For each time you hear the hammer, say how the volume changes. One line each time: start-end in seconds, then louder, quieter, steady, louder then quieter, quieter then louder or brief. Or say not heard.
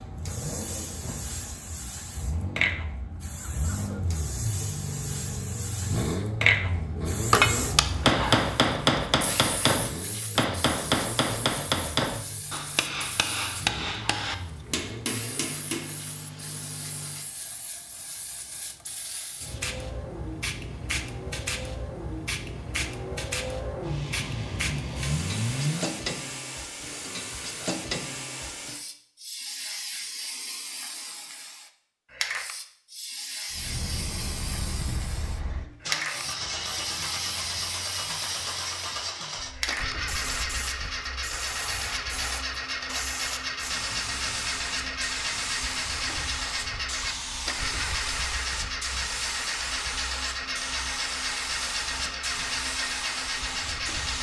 7.3-15.9 quieter.